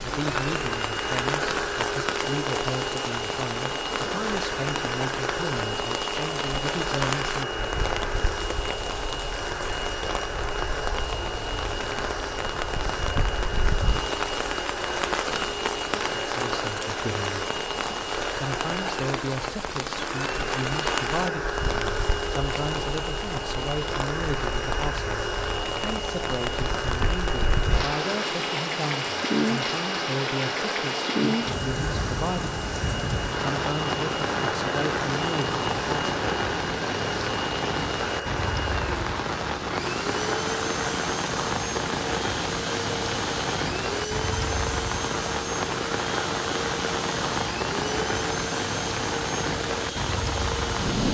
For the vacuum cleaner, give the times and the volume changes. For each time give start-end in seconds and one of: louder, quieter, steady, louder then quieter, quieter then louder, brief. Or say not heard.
0.0-51.1 steady.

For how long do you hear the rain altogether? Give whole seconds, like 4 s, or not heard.
51 s.